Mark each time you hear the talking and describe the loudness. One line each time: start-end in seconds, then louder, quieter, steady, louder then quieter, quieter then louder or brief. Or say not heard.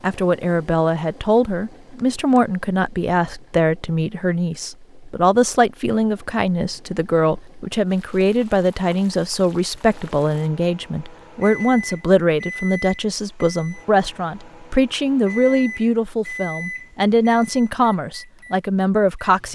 0.0-19.4 steady.